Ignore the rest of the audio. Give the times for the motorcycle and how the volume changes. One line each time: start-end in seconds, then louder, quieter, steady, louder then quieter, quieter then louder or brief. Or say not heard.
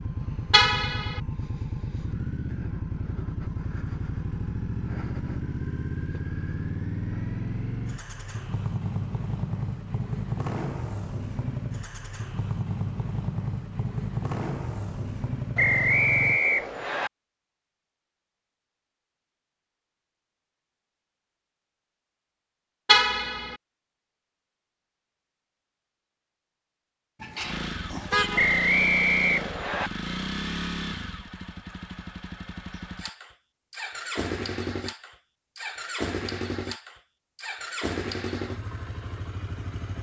0.0-16.4 steady
27.4-39.9 steady.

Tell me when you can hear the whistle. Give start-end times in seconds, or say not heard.
15.6-17.1, 28.4-29.9.